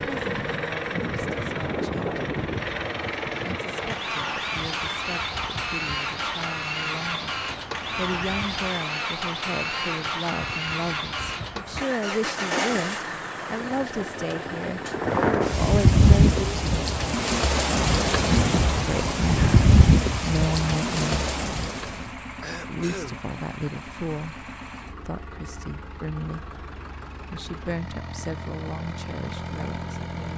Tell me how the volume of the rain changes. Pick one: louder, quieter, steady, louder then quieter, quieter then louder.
louder.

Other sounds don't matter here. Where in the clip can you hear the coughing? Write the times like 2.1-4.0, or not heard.
22.4-23.2.